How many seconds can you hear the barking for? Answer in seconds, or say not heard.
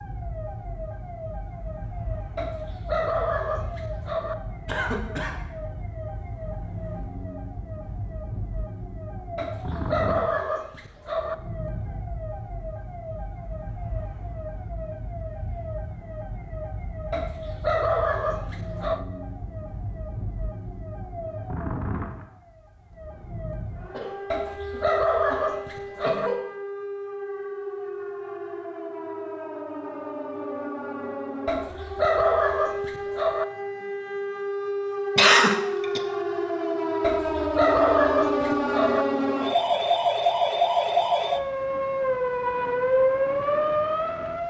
12 s.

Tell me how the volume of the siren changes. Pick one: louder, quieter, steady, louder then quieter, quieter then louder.
louder.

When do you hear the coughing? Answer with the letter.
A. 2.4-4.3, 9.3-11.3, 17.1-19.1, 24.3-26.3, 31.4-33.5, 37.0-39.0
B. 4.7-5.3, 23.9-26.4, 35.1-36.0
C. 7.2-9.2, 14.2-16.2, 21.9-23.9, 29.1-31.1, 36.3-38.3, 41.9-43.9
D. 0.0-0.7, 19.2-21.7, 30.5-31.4
B.